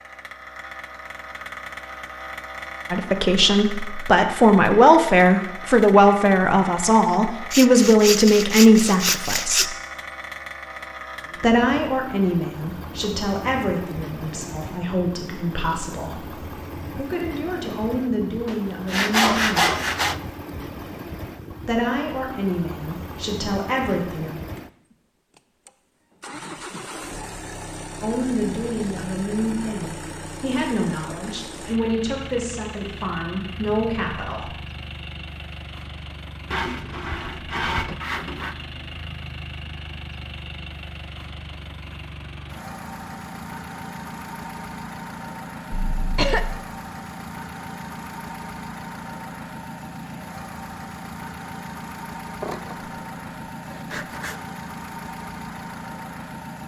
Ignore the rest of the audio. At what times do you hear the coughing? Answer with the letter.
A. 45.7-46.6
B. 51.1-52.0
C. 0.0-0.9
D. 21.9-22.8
A.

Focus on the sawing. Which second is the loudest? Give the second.
19 s.